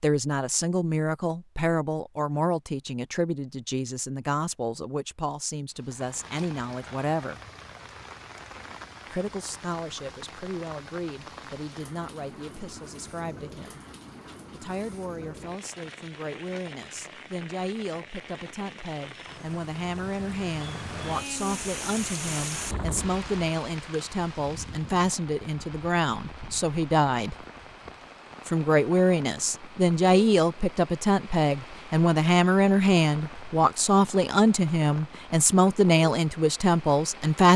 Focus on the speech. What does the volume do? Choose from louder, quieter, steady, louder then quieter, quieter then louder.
quieter then louder.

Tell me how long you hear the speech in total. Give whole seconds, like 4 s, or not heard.
34 s.